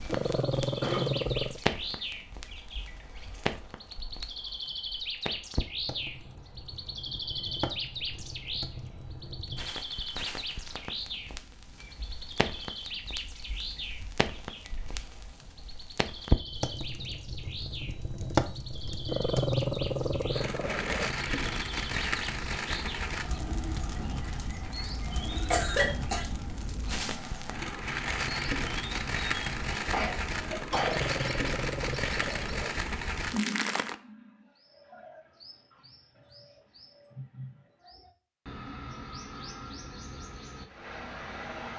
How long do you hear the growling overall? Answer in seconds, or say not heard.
6 s.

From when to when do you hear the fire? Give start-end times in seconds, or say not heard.
0.0-34.0.